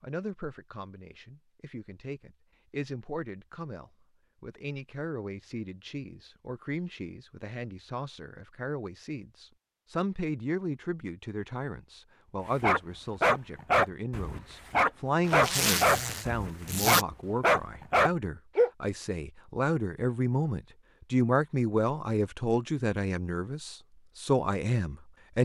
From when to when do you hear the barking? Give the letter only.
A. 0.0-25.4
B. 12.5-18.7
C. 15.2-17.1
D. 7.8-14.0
B.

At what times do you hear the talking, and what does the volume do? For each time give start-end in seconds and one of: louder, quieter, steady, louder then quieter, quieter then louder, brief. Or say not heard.
0.0-25.4 louder.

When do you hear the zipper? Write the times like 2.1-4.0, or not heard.
15.2-17.1.